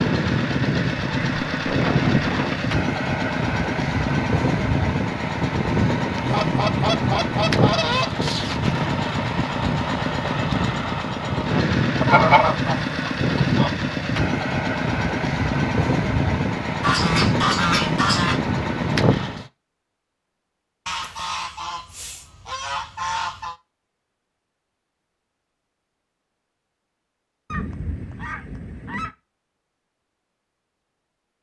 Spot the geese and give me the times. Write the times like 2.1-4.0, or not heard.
1.1-2.8, 6.2-8.1, 12.0-13.7, 16.8-18.4, 20.9-23.6, 27.5-29.1.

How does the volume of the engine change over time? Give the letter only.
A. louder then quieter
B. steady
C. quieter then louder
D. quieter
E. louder
B.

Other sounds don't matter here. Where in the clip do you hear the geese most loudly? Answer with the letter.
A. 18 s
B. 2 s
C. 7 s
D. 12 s
D.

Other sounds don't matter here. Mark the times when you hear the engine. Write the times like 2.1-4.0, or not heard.
0.0-19.5.